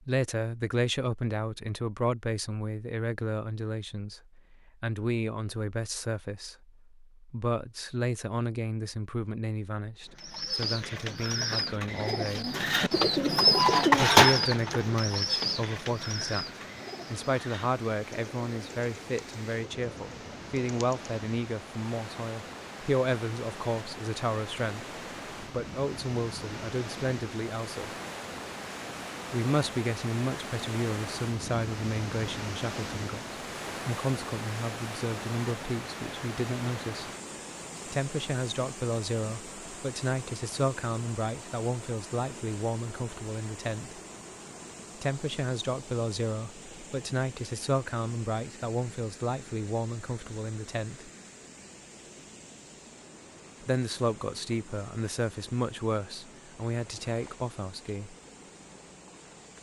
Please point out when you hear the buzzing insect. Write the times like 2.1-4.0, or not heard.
not heard.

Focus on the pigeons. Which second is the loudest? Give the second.
14 s.